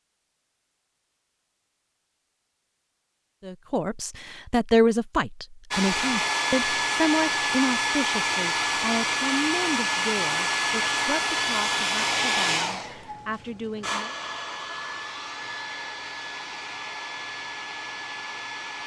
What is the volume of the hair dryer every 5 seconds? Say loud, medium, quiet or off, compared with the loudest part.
off, loud, loud, medium.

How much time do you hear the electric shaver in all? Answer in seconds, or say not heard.
not heard.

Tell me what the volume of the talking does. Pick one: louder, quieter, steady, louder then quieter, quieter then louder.
quieter.